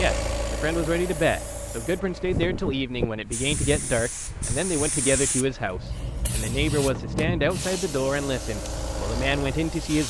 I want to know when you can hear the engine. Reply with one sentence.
The engine can be heard from 0.0 to 2.9 s and from 5.5 to 10.0 s.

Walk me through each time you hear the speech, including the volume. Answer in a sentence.
The speech can be heard from 0.0 to 10.0 s, at a steady volume.